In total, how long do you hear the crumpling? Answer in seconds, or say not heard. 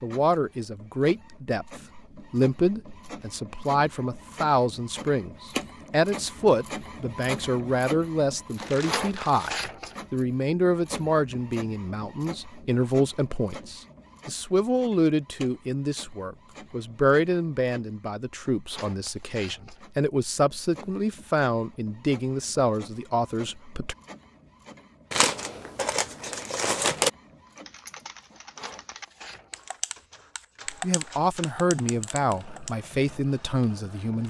3 s.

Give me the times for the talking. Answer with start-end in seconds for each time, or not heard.
0.0-23.9, 30.7-34.2.